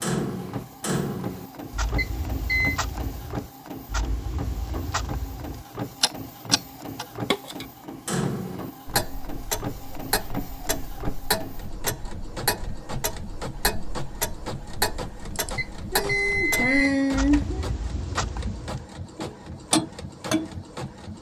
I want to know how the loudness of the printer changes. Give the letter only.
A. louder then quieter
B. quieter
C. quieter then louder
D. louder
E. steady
E.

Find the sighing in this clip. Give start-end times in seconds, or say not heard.
15.3-17.7.